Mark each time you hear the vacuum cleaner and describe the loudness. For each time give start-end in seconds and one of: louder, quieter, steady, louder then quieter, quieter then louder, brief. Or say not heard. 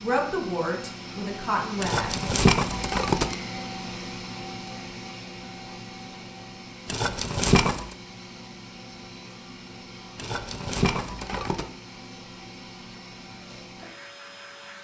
0.0-14.7 quieter.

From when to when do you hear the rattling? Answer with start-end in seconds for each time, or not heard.
1.8-3.4, 6.8-8.0, 10.2-11.7.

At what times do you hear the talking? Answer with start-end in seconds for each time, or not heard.
0.0-2.2.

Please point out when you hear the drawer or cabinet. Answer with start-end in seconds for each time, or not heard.
not heard.